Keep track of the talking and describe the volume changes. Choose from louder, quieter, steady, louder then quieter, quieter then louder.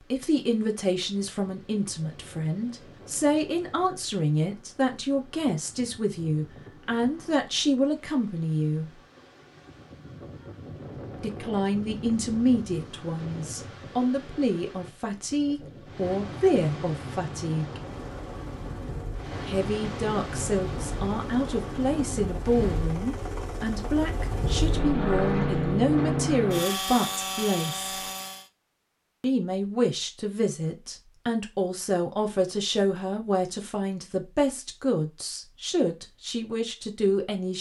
steady.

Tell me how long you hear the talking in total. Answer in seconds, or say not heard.
32 s.